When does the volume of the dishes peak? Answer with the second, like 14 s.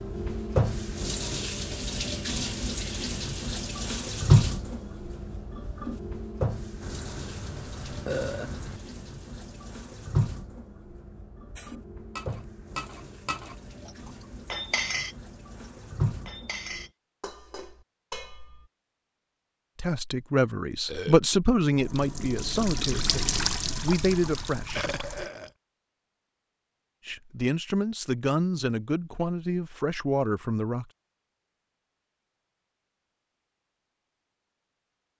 15 s.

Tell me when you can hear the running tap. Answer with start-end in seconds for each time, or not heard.
0.0-16.9, 21.7-25.3.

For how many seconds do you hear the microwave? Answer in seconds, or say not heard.
not heard.